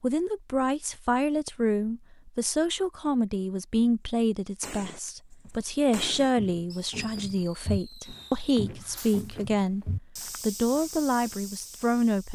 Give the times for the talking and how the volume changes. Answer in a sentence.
The talking can be heard from 0.0 to 12.3 s, at a steady volume.